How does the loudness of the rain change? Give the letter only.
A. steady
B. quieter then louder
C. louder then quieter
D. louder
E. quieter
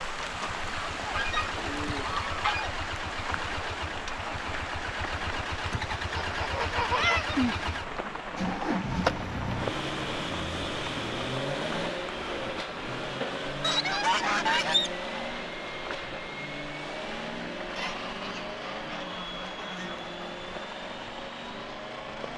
E.